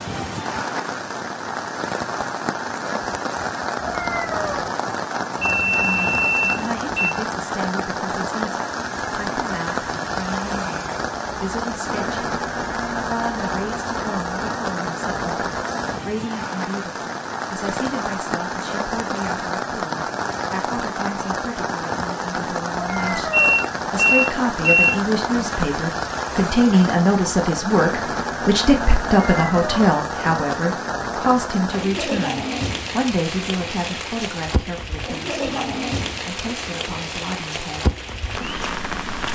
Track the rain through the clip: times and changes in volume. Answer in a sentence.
The rain can be heard from 0.0 to 39.3 s, at a steady volume.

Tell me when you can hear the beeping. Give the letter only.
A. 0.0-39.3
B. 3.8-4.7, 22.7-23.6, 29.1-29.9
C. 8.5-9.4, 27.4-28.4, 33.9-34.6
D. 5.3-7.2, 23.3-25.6
D.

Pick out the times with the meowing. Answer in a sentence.
The meowing can be heard from 3.8 to 4.7 s, from 22.7 to 23.6 s and from 29.1 to 29.9 s.